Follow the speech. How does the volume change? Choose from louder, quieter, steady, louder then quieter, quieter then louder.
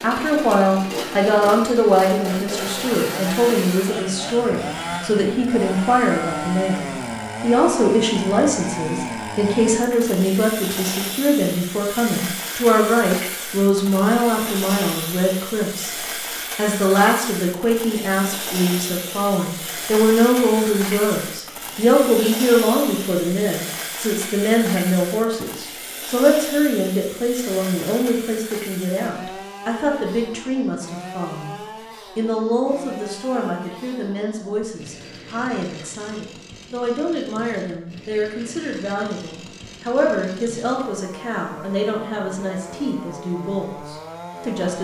quieter.